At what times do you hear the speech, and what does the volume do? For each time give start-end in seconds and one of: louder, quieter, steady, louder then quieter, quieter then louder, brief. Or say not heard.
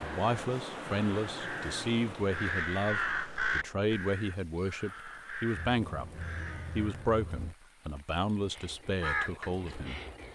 0.0-10.0 steady.